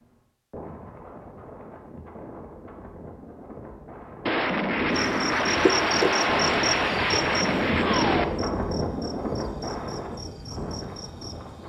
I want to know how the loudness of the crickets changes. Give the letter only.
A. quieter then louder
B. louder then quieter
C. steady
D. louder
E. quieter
E.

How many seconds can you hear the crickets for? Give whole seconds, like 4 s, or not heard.
7 s.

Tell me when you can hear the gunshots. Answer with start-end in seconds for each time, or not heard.
4.2-8.2.